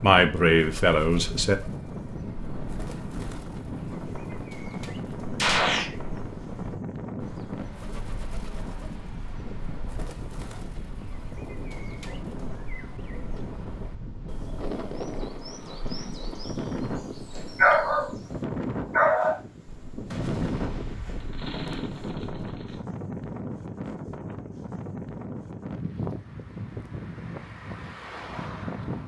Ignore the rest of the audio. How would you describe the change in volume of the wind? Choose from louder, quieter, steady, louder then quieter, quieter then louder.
steady.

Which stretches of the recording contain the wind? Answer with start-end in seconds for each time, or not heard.
0.0-29.0.